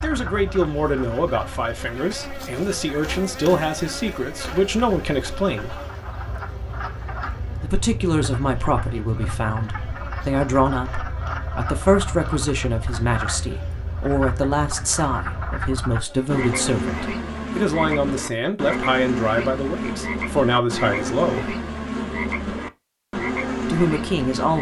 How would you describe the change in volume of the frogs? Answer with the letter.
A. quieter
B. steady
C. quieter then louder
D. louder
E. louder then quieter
D.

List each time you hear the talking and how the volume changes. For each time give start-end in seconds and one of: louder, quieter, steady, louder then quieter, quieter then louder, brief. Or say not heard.
0.0-5.8 quieter then louder
7.6-21.6 steady
23.6-24.5 brief.